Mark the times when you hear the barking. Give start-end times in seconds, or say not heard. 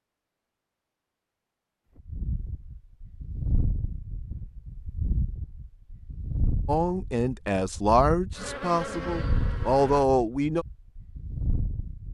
not heard.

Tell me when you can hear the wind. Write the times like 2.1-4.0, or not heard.
1.9-12.1.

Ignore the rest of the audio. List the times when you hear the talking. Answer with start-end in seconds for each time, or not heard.
6.7-10.7.